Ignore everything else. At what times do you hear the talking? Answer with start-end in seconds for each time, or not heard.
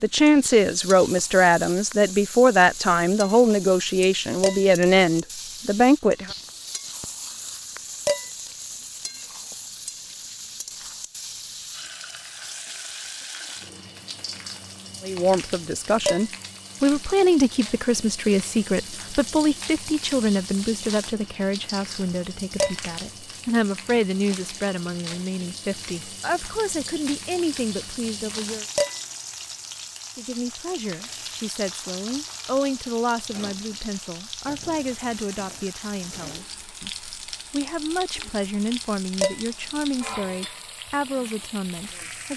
0.0-6.3, 15.0-28.6, 30.1-42.3.